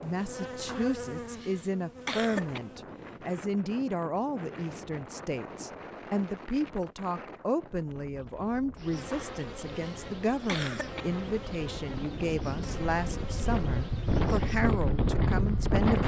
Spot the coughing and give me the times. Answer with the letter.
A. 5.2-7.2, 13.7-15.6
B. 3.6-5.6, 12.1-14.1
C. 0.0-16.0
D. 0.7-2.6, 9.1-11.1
D.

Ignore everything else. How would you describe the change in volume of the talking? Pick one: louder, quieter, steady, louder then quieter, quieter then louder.
steady.